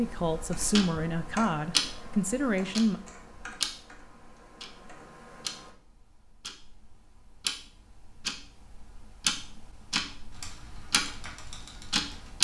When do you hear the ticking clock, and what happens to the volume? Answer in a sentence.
You can hear the ticking clock from 0.0 to 12.3 s, getting quieter then louder.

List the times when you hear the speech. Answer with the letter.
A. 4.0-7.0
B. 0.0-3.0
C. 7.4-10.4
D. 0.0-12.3
B.